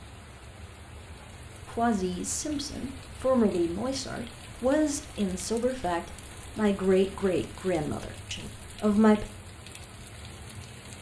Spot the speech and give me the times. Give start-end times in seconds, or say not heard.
1.6-9.2.